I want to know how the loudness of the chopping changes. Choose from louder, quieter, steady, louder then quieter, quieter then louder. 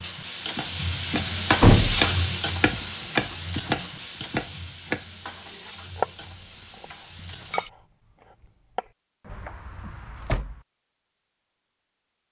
quieter.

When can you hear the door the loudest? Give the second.
2 s.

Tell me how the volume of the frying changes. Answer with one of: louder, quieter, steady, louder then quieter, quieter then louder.
quieter.